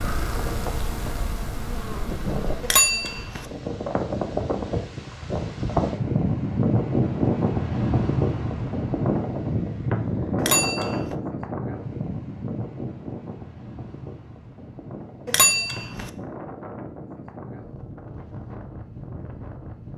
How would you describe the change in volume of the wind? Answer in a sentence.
The loudness of the wind goes up, then down.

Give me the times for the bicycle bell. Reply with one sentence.
You can hear the bicycle bell from 2.6 to 3.5 s, from 10.3 to 11.2 s and from 15.2 to 16.1 s.